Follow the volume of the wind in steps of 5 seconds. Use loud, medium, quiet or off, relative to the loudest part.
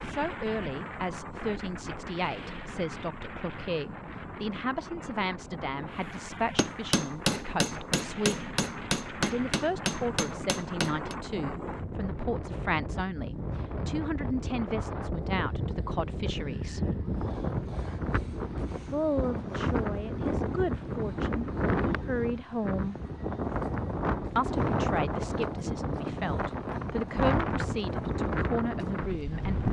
medium, medium, medium, loud, loud, loud.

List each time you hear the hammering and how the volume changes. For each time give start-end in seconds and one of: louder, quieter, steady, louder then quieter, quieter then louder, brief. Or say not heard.
6.2-11.2 quieter.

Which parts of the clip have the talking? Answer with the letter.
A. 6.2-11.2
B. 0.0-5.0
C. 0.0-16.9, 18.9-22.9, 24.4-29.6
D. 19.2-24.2
C.